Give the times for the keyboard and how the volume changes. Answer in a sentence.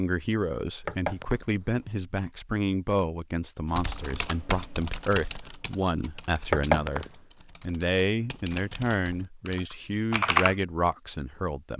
You can hear the keyboard from 3.6 to 10.6 s, getting quieter then louder.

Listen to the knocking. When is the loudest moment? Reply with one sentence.
The loudest moment of the knocking is at 7 seconds.